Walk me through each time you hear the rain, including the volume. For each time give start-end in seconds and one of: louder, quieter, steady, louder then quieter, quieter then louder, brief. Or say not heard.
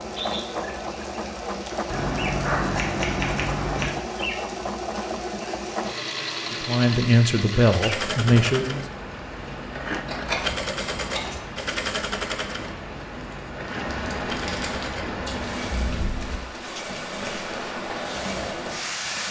0.0-19.2 louder.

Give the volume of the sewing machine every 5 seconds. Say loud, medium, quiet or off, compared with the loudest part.
loud, loud, loud, medium.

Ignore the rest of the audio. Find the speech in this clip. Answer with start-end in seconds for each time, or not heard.
6.5-8.8.